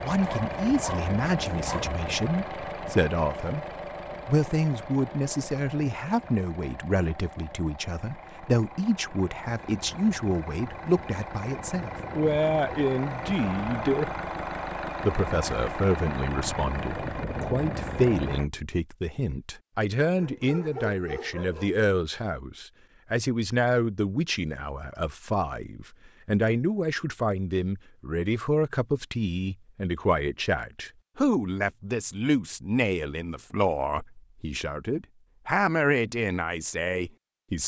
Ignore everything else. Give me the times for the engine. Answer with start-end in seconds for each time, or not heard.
0.0-18.5.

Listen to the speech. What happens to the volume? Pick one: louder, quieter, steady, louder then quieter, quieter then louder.
steady.